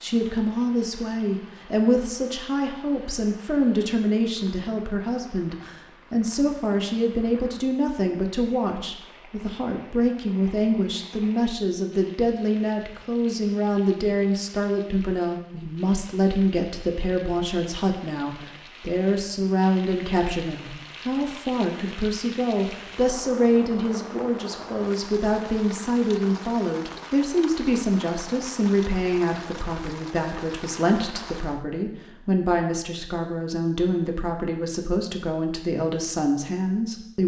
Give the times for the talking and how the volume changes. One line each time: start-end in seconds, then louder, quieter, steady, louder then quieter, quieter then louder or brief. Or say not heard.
0.0-37.2 steady.